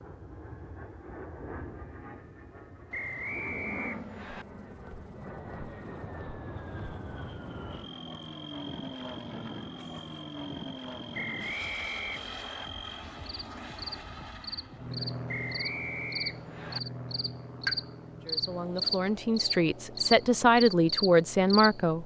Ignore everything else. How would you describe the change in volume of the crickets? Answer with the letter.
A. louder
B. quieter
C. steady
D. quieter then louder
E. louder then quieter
A.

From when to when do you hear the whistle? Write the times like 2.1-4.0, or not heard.
2.9-4.5, 11.1-12.7, 15.2-16.8.